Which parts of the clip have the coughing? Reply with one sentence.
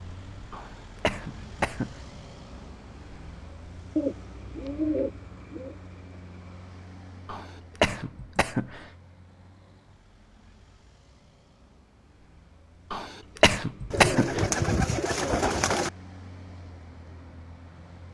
The coughing can be heard from 0.5 to 2.0 s, from 7.2 to 8.8 s and from 12.9 to 14.4 s.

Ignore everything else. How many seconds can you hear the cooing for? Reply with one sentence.
You can hear the cooing for 4 seconds altogether.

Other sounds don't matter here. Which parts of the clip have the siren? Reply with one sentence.
The siren can't be heard in this clip.